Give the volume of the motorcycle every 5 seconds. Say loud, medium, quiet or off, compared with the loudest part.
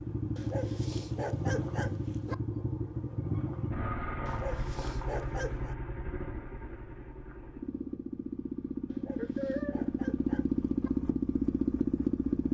medium, medium, loud.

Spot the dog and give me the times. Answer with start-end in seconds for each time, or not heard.
0.3-2.4, 4.2-5.8, 8.8-10.9.